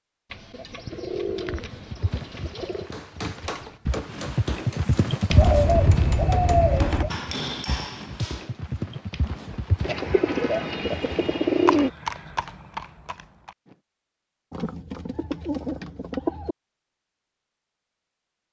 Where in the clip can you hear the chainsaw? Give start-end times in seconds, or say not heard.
not heard.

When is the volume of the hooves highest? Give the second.
5 s.